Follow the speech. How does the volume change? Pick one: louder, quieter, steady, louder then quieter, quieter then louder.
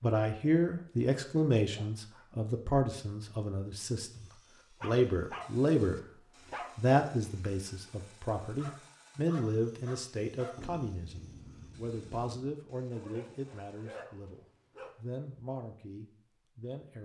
quieter.